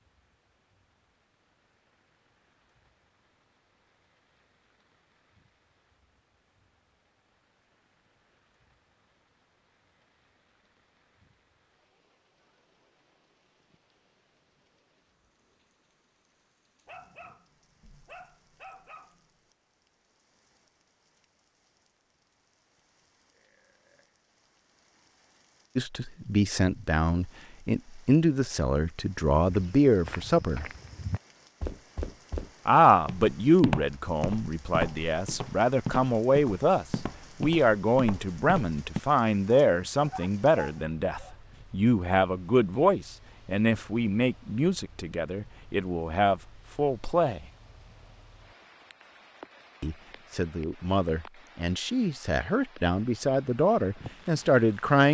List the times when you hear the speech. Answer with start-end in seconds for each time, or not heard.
25.8-30.6, 32.6-47.5, 49.8-55.0.